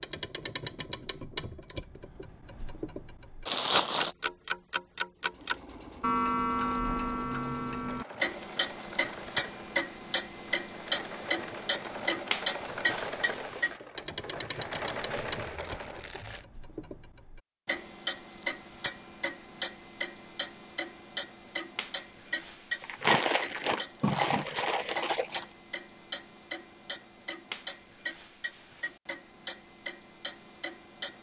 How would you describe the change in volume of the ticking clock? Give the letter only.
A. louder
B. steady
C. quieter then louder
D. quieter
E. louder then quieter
D.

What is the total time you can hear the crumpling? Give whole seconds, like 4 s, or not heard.
5 s.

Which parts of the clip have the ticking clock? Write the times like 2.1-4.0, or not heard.
0.0-31.1.